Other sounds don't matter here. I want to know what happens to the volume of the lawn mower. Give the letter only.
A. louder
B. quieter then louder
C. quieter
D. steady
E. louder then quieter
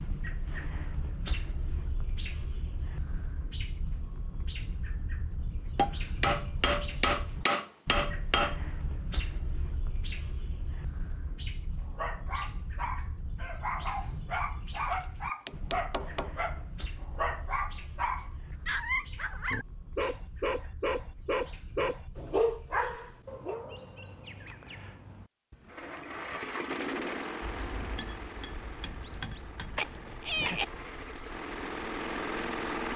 B.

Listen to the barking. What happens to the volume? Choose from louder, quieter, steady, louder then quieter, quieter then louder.
louder.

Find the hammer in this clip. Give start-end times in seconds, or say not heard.
5.8-8.6, 14.9-16.4, 27.4-29.9.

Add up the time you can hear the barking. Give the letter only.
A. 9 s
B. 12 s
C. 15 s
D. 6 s
B.